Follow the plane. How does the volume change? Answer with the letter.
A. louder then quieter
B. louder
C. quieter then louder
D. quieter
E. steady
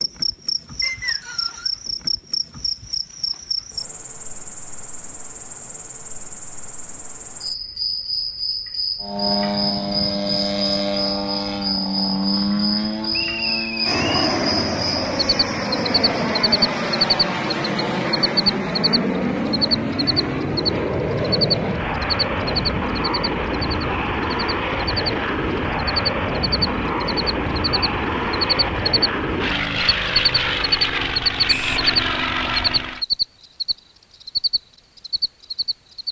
E.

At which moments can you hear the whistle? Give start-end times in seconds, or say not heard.
0.8-1.7, 13.1-14.1, 31.4-31.9.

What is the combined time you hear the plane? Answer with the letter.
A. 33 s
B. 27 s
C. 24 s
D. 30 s
C.